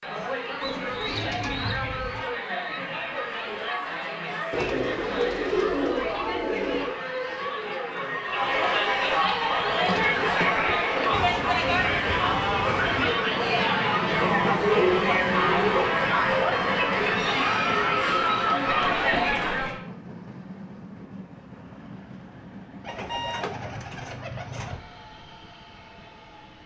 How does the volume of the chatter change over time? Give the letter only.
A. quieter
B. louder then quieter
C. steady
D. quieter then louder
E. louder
E.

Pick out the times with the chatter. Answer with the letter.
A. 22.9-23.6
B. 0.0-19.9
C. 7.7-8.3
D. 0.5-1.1
B.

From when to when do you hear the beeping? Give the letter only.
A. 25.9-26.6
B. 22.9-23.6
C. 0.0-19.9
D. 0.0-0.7
B.